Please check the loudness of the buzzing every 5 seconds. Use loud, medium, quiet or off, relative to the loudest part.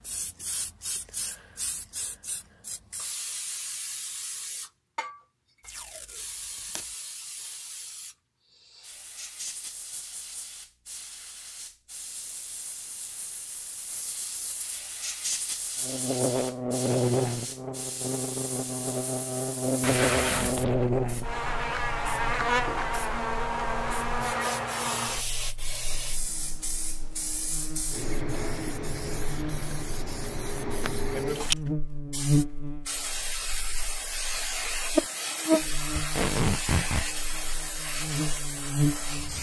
off, off, off, loud, loud, quiet, loud, loud.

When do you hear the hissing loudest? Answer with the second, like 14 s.
31 s.